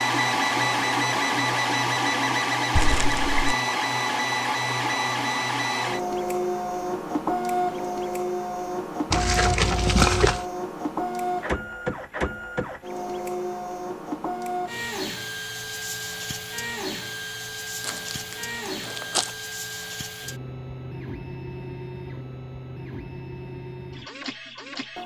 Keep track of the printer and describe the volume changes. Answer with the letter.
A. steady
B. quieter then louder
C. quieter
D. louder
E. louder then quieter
C.